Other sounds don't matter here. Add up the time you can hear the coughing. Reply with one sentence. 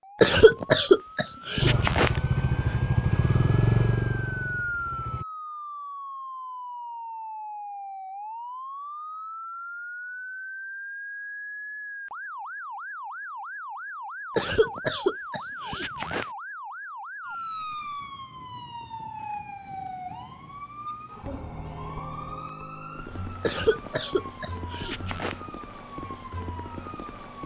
The coughing can be heard for 6 seconds in total.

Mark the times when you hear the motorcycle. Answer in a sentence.
The motorcycle can be heard from 1.6 to 5.2 s.